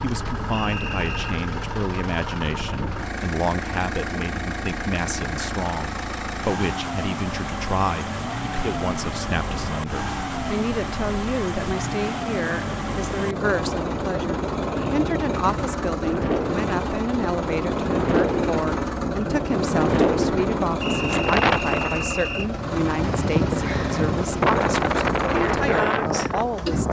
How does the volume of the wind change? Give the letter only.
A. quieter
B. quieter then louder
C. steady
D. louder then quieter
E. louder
E.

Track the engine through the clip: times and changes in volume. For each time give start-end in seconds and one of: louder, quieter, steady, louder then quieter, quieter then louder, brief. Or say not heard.
0.0-26.8 steady.